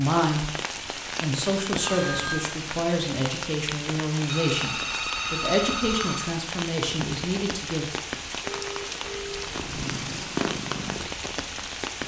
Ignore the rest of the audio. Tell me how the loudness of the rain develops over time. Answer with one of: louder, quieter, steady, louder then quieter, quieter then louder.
steady.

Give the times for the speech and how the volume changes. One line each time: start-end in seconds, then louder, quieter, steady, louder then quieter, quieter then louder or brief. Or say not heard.
0.0-7.9 steady.